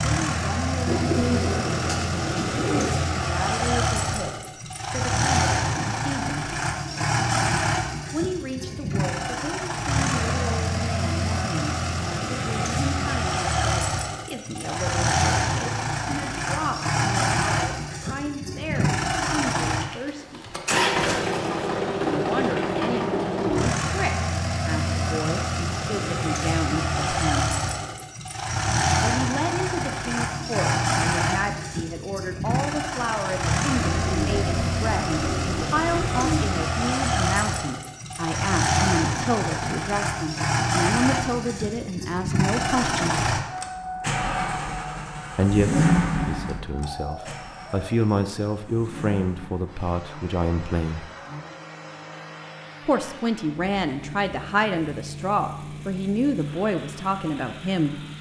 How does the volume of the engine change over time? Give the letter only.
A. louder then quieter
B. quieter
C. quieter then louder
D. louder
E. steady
B.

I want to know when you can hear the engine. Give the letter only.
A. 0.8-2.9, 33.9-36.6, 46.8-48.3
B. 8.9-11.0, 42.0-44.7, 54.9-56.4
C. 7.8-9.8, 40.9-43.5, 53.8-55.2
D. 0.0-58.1
D.